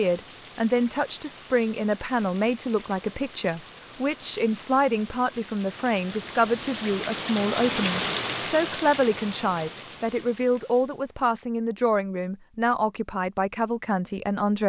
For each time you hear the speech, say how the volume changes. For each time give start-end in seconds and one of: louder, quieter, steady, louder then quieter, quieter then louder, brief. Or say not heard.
0.0-14.6 steady.